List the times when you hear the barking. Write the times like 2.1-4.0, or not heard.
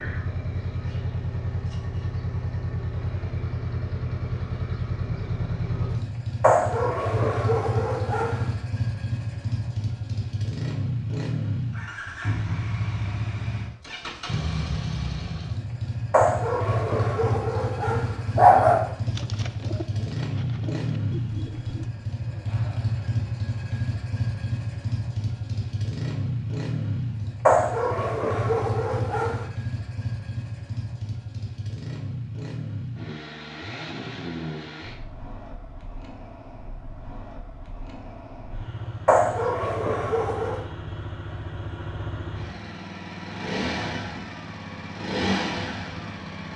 6.4-8.4, 16.1-18.9, 27.4-29.4, 39.0-40.6.